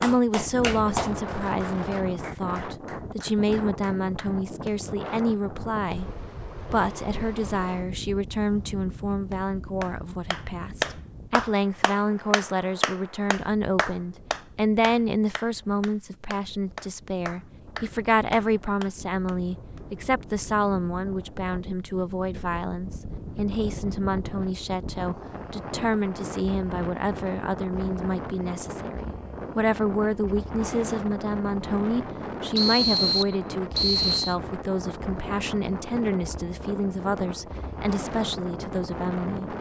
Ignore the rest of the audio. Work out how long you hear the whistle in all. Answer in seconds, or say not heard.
2 s.